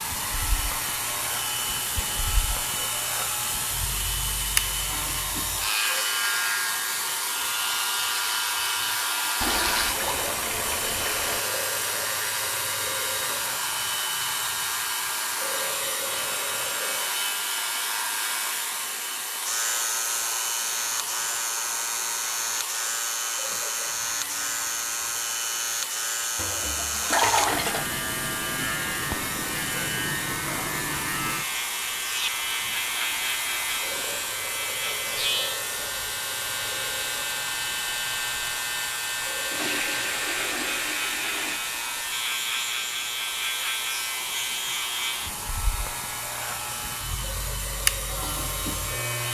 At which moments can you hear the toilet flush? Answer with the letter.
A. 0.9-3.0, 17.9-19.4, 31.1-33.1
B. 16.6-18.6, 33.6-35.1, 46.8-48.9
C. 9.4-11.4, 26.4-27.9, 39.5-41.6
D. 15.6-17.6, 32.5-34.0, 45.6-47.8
C.